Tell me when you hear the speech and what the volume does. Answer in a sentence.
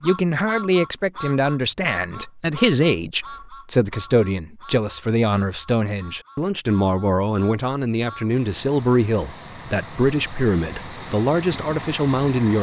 You can hear the speech from 0.0 to 12.5 s, at a steady volume.